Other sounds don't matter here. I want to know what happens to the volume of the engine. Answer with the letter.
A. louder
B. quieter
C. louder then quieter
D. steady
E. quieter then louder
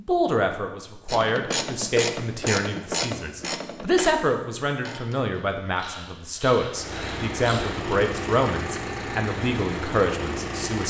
D.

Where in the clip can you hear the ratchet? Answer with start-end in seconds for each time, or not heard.
1.1-7.8.